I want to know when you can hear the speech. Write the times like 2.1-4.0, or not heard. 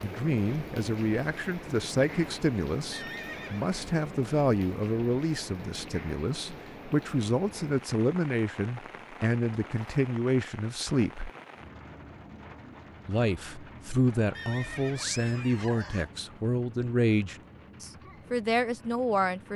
0.0-11.3, 13.1-19.5.